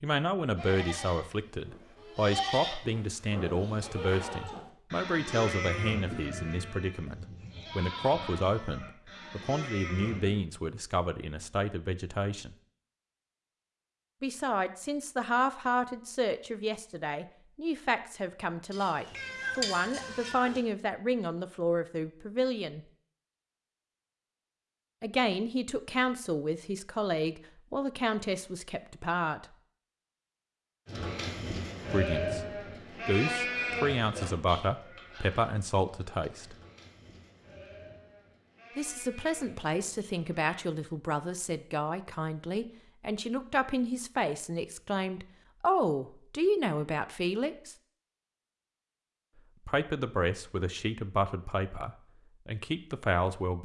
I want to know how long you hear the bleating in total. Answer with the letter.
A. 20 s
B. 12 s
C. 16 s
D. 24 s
A.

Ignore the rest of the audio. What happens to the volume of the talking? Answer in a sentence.
The volume of the talking stays about the same.